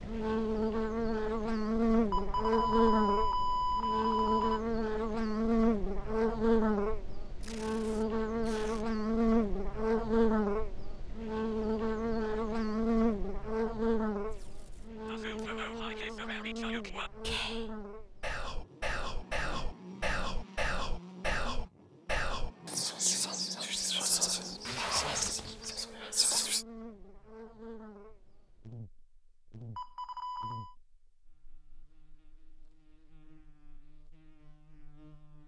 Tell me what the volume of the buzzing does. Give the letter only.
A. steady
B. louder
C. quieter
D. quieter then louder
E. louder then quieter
C.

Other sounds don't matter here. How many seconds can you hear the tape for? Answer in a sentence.
The tape can be heard for 4 seconds in total.